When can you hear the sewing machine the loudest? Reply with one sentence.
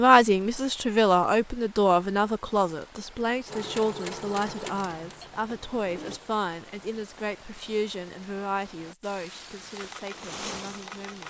The loudest moment of the sewing machine is at 4 seconds.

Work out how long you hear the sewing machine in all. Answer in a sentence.
You can hear the sewing machine for 4 seconds altogether.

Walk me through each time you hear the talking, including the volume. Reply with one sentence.
You can hear the talking from 0.0 to 11.2 s, getting quieter.